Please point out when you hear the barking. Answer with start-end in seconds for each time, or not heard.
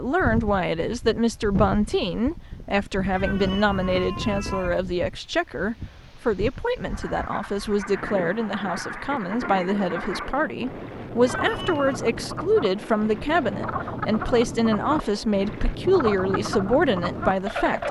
not heard.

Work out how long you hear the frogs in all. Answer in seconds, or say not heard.
11 s.